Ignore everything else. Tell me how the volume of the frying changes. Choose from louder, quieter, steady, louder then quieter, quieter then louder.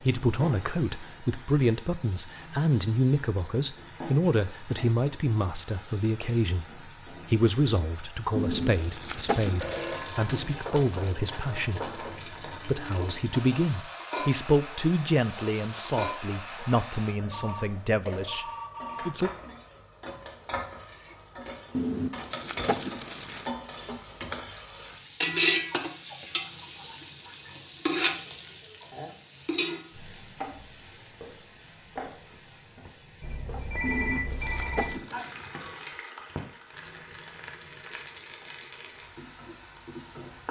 louder then quieter.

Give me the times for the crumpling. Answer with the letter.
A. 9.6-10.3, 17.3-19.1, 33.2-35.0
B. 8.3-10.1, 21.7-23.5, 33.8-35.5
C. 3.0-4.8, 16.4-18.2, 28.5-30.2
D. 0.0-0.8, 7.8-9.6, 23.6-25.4
B.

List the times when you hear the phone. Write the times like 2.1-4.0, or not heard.
9.6-10.3, 17.3-19.1, 33.2-35.0.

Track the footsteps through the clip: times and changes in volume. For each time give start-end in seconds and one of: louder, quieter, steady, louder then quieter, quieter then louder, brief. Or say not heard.
not heard.